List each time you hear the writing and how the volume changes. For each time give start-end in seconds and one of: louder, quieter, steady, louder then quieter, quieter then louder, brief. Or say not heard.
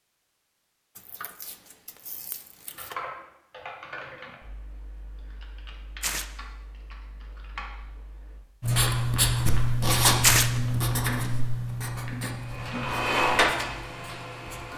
8.6-14.7 quieter.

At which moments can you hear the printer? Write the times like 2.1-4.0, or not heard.
12.3-14.7.